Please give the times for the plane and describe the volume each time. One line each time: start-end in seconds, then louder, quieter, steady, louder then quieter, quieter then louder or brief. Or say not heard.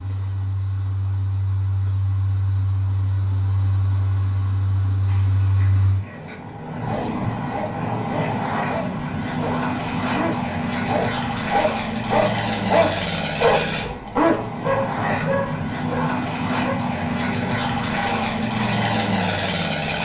0.0-19.9 louder.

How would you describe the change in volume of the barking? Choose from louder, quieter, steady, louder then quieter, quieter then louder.
louder.